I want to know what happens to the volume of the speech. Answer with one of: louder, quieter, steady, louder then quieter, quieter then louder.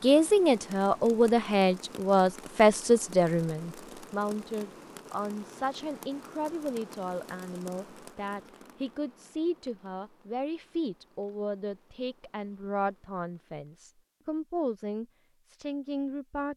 quieter.